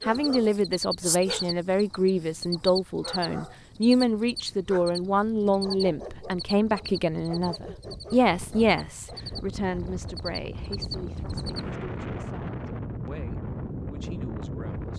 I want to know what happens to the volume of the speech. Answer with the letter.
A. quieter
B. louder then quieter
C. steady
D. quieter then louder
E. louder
A.